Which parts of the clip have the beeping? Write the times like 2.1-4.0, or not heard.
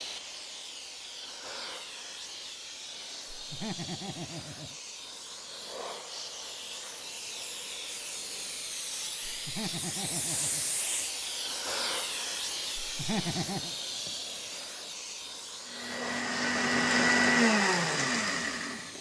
not heard.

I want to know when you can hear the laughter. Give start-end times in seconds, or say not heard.
3.3-4.8, 9.3-10.7, 12.8-13.7.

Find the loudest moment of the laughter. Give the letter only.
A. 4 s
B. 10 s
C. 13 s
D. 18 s
C.